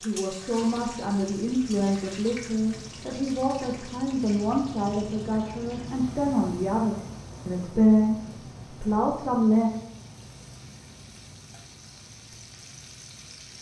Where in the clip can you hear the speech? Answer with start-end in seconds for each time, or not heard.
0.0-9.7.